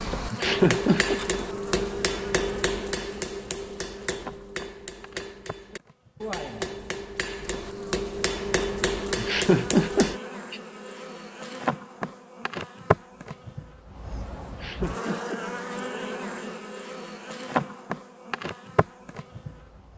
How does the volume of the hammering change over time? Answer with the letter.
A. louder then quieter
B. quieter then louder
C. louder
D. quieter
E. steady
B.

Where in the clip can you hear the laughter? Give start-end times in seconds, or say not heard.
0.3-1.1, 9.2-10.6, 14.5-15.4.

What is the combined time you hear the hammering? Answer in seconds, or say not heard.
10 s.